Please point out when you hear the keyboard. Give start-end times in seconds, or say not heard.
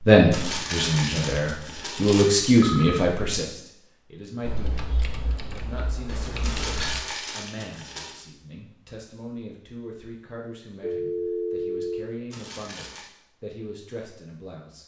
4.4-7.0.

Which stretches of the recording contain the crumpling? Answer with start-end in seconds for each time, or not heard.
0.3-2.2, 6.4-8.2, 12.3-13.1.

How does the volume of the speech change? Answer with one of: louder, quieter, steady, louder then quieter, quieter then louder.
quieter.